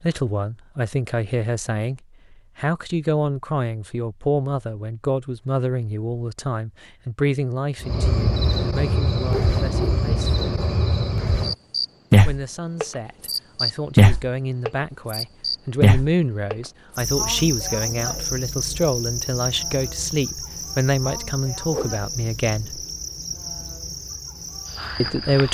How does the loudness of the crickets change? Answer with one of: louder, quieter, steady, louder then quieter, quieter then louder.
louder then quieter.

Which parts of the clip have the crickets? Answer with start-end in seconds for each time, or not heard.
7.8-25.4.